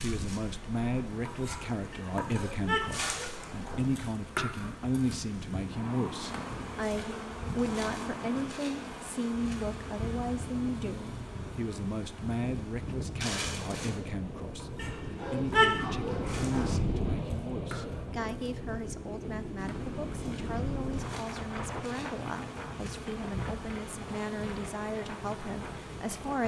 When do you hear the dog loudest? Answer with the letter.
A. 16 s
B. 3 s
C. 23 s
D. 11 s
A.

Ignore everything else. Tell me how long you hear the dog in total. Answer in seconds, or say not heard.
4 s.